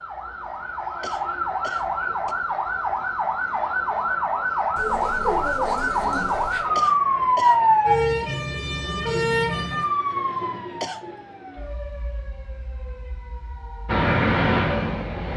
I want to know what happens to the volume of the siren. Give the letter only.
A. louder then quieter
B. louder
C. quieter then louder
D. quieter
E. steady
A.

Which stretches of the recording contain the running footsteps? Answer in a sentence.
The running footsteps can't be heard in this clip.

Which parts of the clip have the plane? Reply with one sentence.
The plane can be heard from 13.8 to 15.3 s.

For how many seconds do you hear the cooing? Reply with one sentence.
The cooing can be heard for 2 seconds in total.